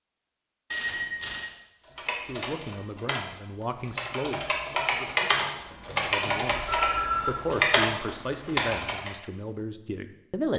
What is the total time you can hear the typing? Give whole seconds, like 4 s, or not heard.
7 s.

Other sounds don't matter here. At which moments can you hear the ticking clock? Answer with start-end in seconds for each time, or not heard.
not heard.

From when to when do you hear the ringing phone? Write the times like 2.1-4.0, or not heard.
0.7-1.5, 6.5-7.5.